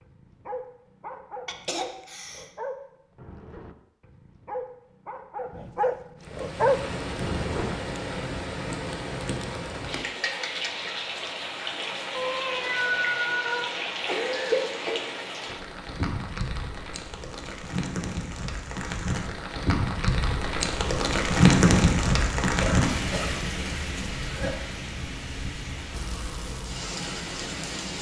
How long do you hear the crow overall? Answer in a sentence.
You can't hear the crow here.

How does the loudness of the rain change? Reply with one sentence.
The volume of the rain goes up, then down.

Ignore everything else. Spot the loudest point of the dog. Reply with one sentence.
The volume of the dog peaks at 7 seconds.